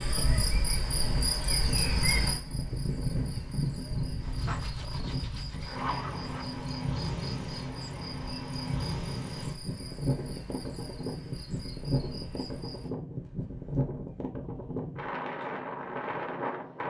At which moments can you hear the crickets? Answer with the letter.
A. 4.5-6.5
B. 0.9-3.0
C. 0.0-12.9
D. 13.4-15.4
C.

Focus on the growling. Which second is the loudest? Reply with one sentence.
The volume of the growling peaks at 6 seconds.